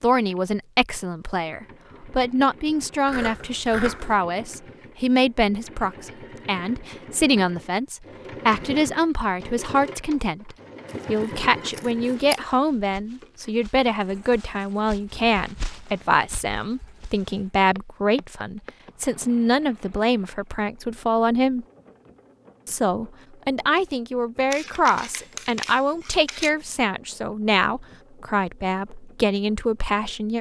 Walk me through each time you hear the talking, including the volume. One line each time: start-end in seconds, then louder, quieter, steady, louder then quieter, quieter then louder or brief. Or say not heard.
0.0-21.6 steady
22.6-30.3 steady.